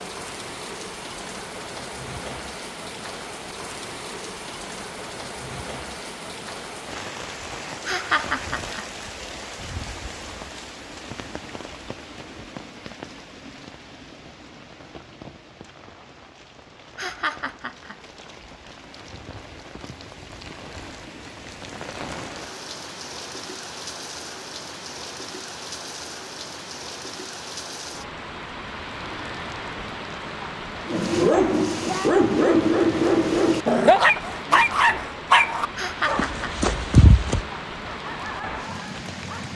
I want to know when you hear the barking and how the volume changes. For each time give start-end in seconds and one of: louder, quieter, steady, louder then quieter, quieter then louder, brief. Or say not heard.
30.9-39.5 quieter.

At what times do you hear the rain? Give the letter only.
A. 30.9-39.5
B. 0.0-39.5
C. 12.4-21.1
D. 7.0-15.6
B.